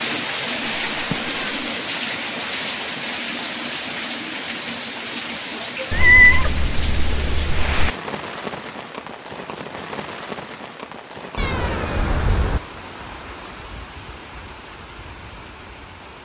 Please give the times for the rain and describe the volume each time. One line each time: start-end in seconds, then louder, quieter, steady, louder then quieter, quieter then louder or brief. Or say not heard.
0.0-16.1 quieter.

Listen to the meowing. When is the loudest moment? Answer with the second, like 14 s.
6 s.